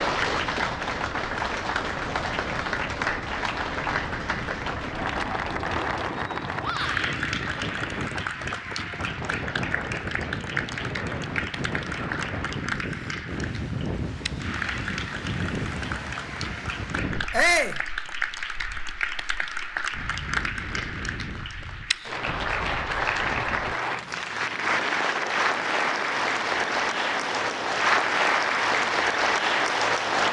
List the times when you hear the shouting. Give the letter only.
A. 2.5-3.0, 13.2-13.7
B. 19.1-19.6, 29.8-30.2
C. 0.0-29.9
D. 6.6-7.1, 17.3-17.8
D.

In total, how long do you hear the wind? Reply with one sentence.
You can hear the wind for 30 seconds altogether.